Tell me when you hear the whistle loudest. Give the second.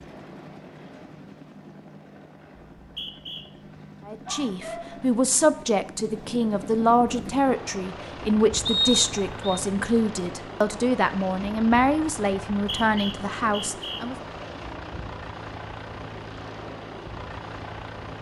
9 s.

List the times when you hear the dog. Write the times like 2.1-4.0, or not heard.
4.2-5.0.